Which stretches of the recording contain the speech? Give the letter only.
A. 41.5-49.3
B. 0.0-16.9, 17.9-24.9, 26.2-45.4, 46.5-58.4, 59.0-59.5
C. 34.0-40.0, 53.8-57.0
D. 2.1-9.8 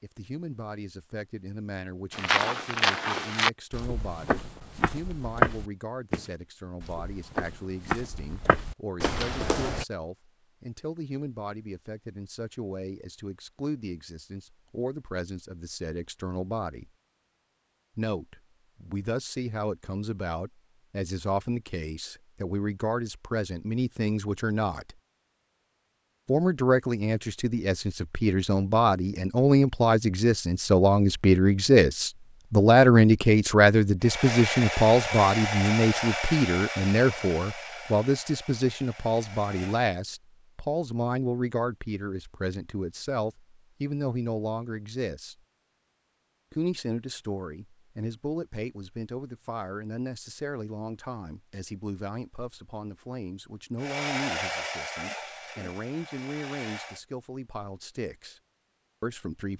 B.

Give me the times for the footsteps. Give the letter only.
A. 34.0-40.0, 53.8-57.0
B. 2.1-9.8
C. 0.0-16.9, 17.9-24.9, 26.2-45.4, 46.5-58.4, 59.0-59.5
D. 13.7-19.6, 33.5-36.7
B.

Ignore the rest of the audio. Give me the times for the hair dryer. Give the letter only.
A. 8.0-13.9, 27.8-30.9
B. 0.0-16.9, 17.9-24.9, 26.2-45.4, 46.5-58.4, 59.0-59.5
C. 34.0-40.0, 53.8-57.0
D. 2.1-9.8
C.